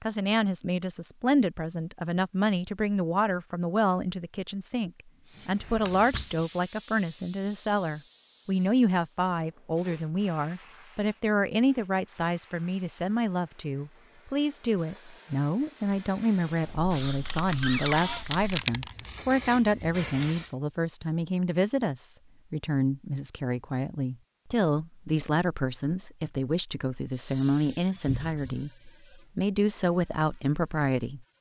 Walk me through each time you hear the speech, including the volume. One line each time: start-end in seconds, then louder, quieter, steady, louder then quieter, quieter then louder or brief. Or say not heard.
0.0-31.3 steady.